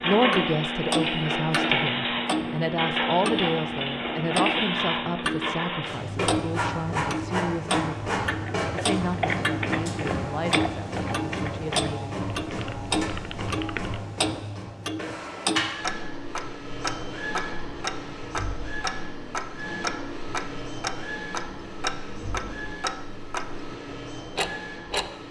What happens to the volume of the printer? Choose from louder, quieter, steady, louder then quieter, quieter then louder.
quieter.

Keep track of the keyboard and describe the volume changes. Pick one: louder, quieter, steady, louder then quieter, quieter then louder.
quieter.